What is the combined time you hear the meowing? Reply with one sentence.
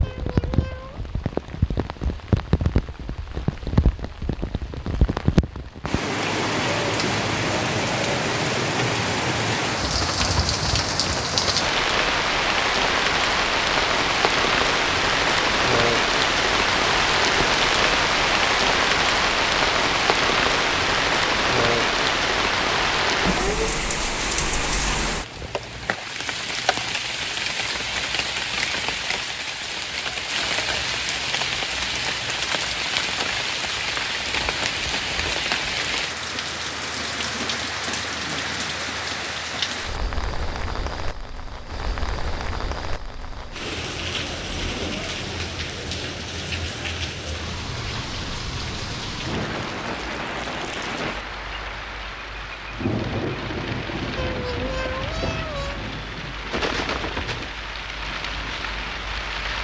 The meowing can be heard for 3 seconds in total.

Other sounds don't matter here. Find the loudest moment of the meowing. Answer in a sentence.
The loudest moment of the meowing is at 55 seconds.